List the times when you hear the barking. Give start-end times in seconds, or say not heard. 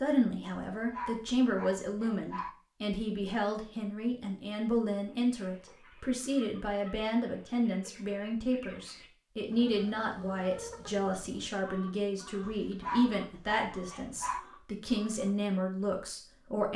0.5-2.5, 12.4-14.4.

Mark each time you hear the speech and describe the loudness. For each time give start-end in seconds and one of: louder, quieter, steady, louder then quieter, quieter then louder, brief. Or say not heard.
0.0-16.7 steady.